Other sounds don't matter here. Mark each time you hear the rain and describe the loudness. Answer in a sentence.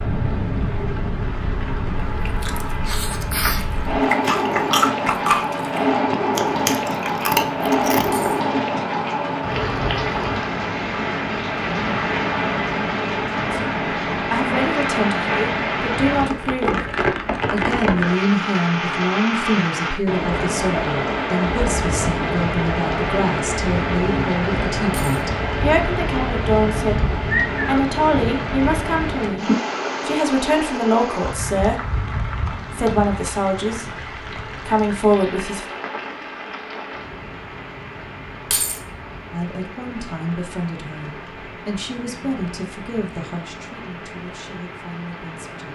The rain can be heard from 0.0 to 45.6 s, getting quieter.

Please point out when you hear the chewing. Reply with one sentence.
The chewing can be heard from 2.0 to 8.3 s.